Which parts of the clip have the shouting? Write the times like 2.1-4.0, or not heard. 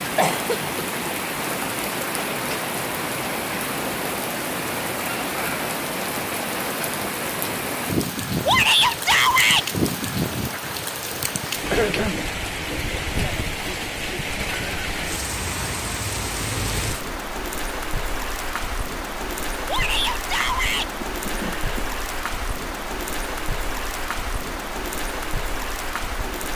8.4-9.7, 19.6-20.9.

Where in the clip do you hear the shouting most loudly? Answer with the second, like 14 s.
9 s.